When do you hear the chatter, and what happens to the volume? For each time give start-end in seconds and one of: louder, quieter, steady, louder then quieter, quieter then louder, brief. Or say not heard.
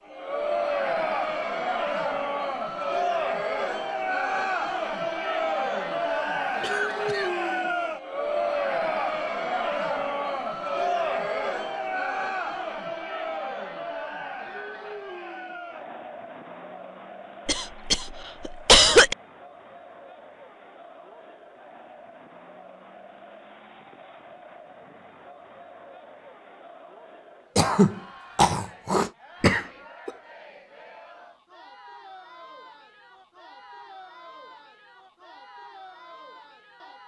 0.1-37.0 quieter.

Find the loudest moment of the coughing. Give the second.
19 s.